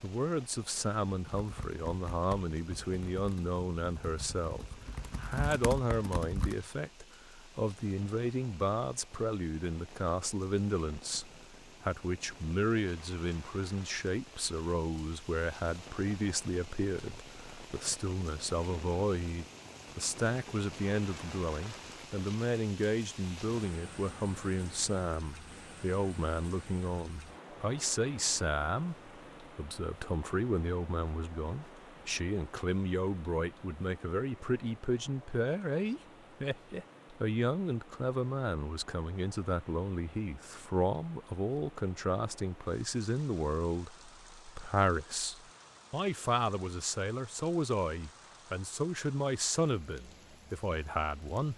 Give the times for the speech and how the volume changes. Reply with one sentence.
You can hear the speech from 0.0 to 51.5 s, at a steady volume.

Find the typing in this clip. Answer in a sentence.
The typing can be heard from 1.3 to 6.7 s.